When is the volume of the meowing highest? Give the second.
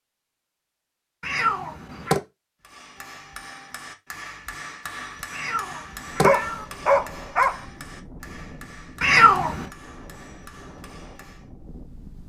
9 s.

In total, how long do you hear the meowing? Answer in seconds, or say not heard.
3 s.